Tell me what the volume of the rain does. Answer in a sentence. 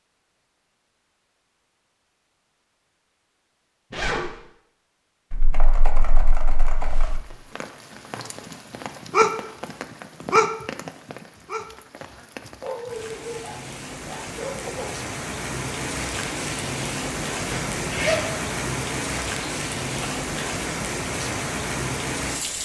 The volume of the rain goes up.